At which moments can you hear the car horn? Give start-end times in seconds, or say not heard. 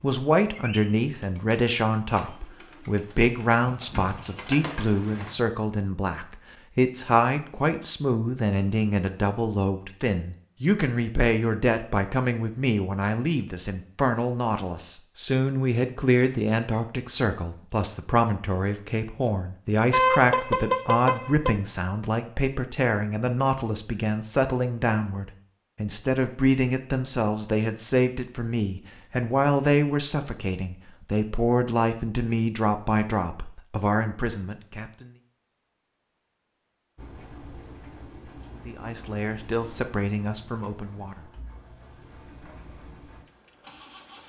19.9-21.6.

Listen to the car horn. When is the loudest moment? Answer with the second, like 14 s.
20 s.